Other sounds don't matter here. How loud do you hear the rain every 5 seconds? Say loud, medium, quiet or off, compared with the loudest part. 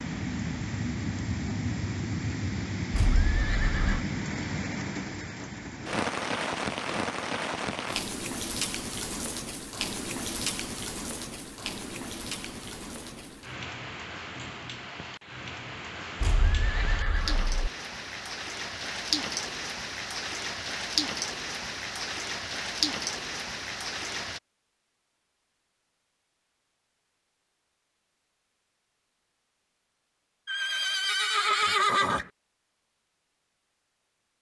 loud, loud, medium, loud, loud, off, off.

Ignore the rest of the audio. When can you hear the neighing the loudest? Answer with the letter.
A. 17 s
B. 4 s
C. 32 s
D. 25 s
C.